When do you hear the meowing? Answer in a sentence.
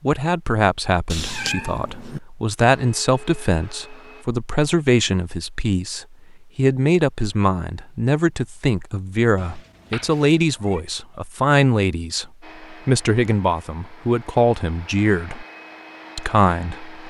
You can hear the meowing from 1.1 to 2.2 s and from 9.3 to 10.8 s.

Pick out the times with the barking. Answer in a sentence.
The barking can't be heard in this clip.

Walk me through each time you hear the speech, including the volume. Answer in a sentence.
The speech can be heard from 0.0 to 15.4 s, at a steady volume; and briefly from 16.1 to 17.0 s.